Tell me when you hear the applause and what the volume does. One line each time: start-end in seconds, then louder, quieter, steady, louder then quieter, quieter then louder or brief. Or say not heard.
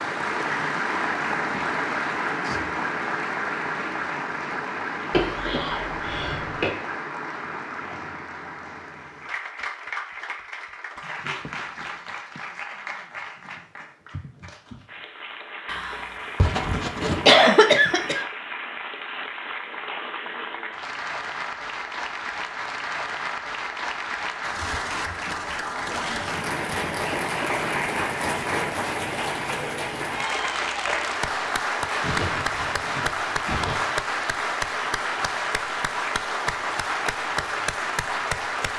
0.0-38.7 quieter then louder.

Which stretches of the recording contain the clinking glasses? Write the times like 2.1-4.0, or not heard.
not heard.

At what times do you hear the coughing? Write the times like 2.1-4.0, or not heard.
5.1-6.7, 15.7-18.2, 32.0-34.0.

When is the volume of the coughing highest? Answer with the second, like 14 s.
17 s.